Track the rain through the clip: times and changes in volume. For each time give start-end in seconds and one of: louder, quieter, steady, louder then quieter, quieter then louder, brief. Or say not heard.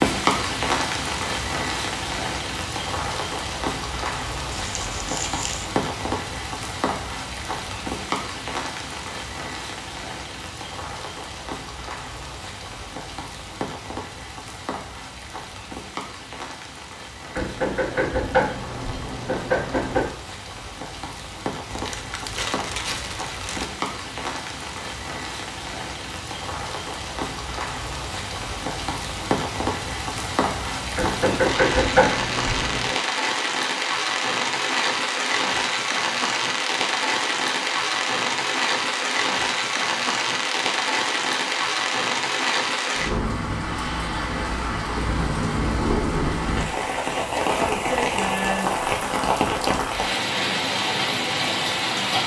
0.0-52.2 quieter then louder.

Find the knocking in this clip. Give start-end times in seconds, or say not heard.
17.4-20.1, 30.9-33.0.